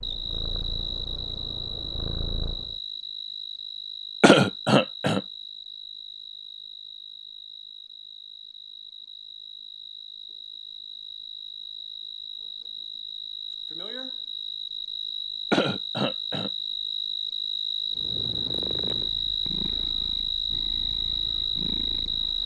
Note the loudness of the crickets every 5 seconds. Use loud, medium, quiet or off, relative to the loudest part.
medium, quiet, medium, loud, loud.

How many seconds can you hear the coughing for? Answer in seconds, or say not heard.
2 s.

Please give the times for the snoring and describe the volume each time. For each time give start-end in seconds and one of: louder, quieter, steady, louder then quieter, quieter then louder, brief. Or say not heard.
not heard.